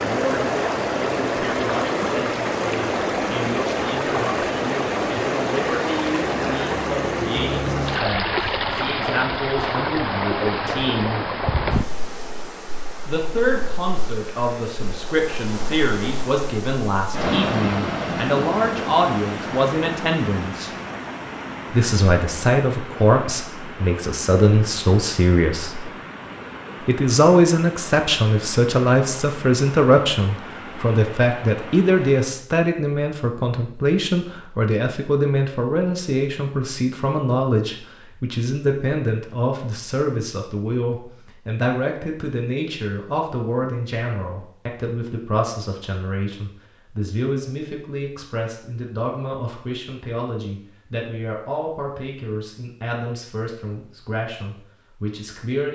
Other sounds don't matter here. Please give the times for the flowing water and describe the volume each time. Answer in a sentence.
You can hear the flowing water from 0.0 to 32.5 s, getting quieter.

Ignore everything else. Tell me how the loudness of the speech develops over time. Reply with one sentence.
The loudness of the speech goes up, then down.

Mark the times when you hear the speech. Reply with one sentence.
You can hear the speech from 0.0 to 11.2 s, from 13.1 to 20.7 s, from 21.7 to 25.9 s and from 26.8 to 55.6 s.